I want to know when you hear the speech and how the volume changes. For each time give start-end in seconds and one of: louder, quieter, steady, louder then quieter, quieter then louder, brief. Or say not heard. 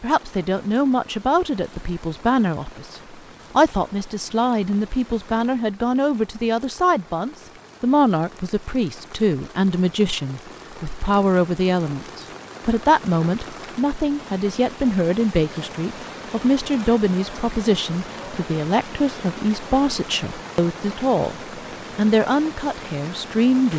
0.0-23.7 steady.